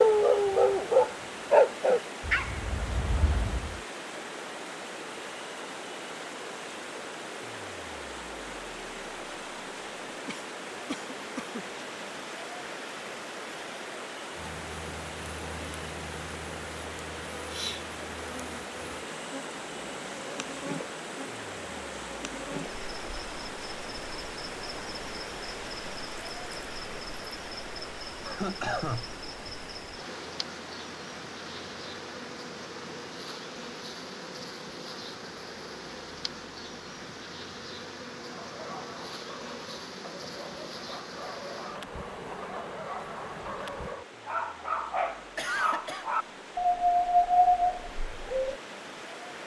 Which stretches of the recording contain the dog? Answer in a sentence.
The dog can be heard from 0.0 to 3.8 s and from 38.2 to 48.5 s.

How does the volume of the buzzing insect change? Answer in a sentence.
The volume of the buzzing insect stays about the same.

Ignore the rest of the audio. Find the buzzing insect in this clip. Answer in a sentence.
You can hear the buzzing insect from 14.3 to 44.0 s.